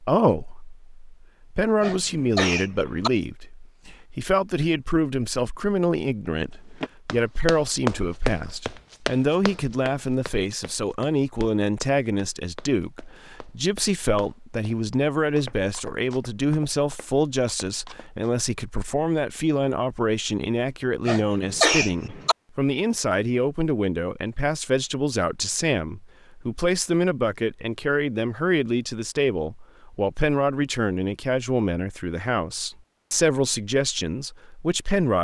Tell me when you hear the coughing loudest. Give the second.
22 s.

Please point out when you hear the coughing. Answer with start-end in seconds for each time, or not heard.
1.8-3.1, 21.1-22.4.